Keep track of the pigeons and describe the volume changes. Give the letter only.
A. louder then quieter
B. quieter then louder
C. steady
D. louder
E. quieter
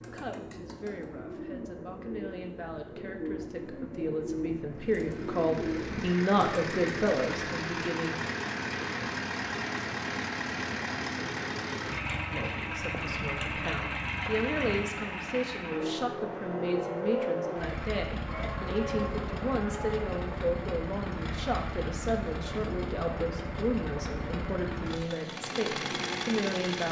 D.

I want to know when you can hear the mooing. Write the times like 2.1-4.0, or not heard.
18.2-20.1.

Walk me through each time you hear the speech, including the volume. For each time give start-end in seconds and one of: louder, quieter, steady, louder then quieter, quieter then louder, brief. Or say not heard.
0.0-8.2 louder
12.3-26.8 steady.